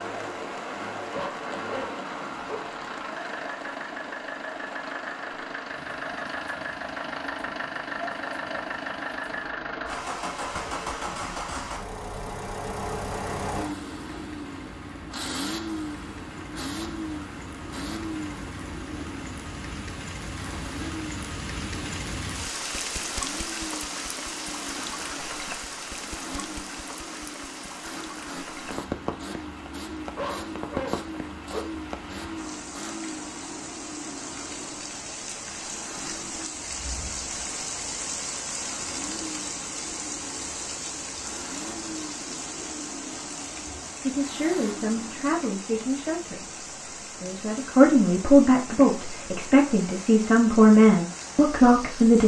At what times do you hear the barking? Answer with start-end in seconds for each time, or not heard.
1.1-2.8, 30.1-31.8.